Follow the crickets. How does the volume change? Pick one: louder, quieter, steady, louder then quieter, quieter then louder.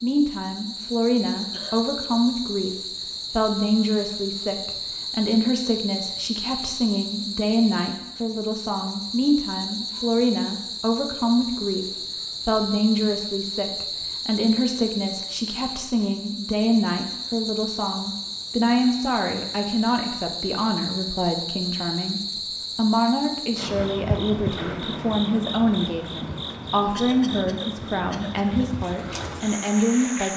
steady.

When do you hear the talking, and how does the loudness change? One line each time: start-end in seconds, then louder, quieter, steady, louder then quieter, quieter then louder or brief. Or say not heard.
0.0-11.8 steady
12.4-30.3 steady.